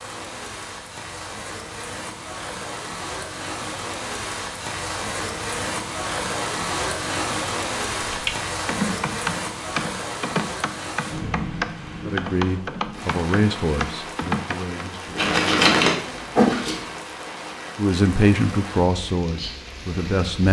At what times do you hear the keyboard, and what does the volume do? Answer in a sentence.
You can hear the keyboard from 8.1 to 14.8 s, at a steady volume.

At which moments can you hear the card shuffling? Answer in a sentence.
You can hear the card shuffling from 15.2 to 16.8 s.